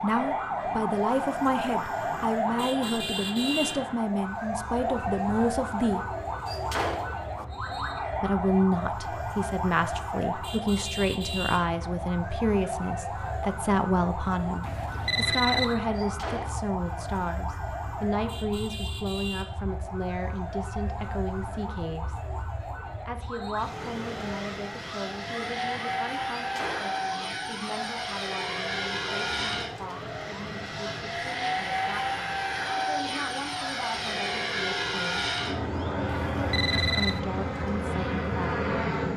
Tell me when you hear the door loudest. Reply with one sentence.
The loudest moment of the door is at 7 seconds.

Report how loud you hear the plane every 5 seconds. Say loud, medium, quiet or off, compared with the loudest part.
quiet, quiet, quiet, quiet, quiet, loud, loud, loud.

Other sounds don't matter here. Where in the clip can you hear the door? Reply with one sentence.
You can hear the door from 6.5 to 7.5 s, from 15.9 to 16.6 s and from 26.4 to 27.3 s.